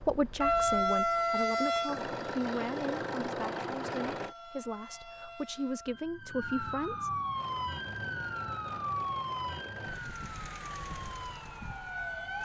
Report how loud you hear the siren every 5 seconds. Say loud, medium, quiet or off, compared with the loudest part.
loud, medium, medium.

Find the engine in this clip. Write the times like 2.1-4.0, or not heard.
0.0-4.3, 7.3-12.3.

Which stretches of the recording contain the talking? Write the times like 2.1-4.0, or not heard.
0.0-7.1.